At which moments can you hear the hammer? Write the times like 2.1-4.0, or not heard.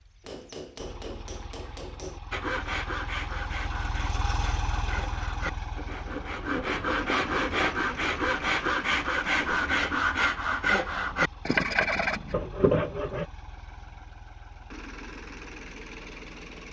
0.2-2.2.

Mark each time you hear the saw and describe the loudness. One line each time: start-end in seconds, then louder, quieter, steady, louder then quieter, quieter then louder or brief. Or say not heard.
2.3-13.2 louder.